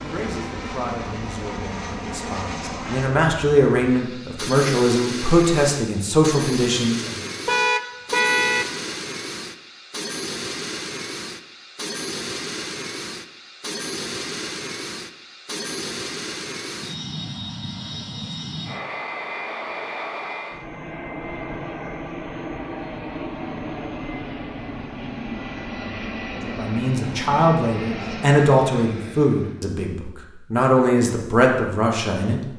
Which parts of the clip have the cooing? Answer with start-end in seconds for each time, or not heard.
not heard.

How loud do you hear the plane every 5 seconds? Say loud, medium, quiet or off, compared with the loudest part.
loud, loud, loud, loud, loud, loud, off.